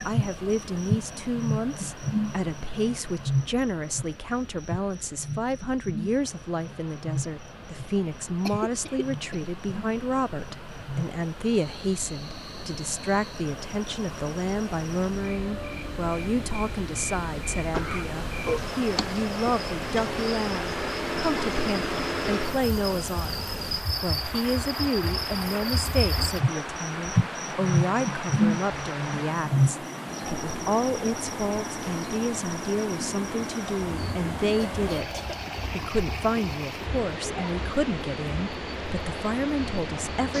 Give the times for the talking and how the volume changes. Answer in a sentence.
You can hear the talking from 0.0 to 40.3 s, at a steady volume.